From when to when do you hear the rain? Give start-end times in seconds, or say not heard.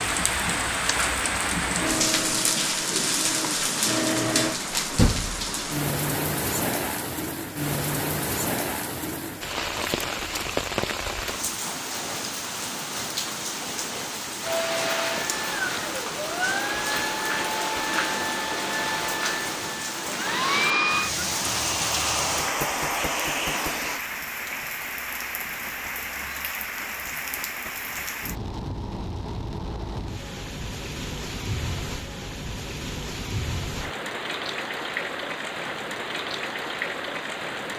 0.0-37.7.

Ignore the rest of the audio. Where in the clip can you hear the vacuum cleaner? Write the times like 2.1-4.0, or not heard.
1.8-4.6, 14.4-24.1.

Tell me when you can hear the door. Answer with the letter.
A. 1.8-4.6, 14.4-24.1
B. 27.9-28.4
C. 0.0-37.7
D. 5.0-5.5
D.